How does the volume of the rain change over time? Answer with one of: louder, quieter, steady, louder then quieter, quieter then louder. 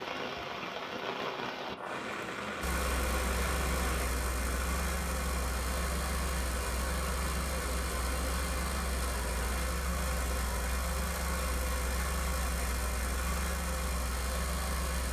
quieter.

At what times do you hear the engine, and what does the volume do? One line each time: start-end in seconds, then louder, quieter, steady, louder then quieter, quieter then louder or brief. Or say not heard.
2.6-15.0 steady.